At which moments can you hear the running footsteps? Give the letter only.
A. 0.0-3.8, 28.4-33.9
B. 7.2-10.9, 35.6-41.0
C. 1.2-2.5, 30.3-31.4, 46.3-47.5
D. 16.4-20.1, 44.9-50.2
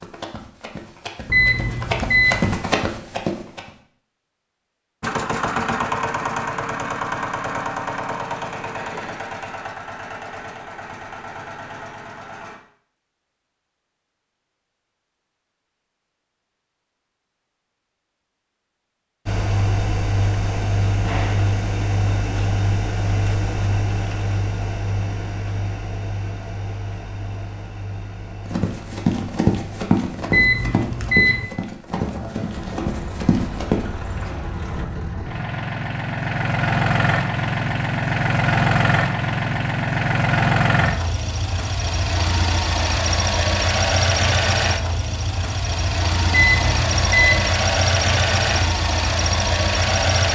A.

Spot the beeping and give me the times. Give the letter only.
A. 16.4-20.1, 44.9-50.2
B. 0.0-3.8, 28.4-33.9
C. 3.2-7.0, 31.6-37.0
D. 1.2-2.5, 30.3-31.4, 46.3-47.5
D.